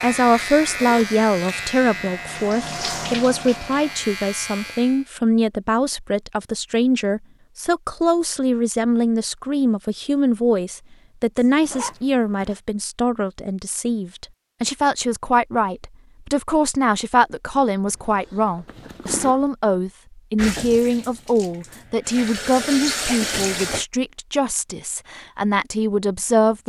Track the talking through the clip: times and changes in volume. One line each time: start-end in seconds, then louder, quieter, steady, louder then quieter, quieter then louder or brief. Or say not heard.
0.0-26.6 steady.